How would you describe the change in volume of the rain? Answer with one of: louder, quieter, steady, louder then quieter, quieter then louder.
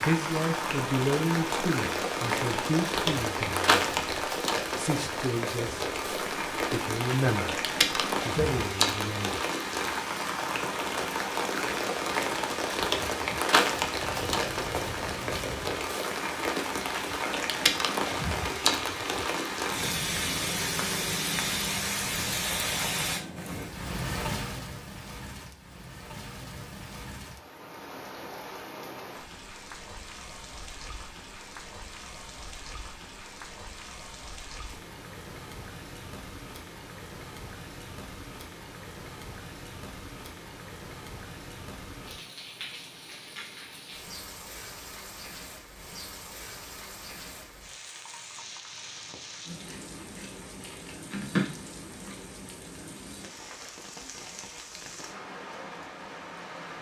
quieter.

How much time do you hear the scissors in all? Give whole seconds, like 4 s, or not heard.
4 s.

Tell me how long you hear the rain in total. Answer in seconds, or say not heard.
57 s.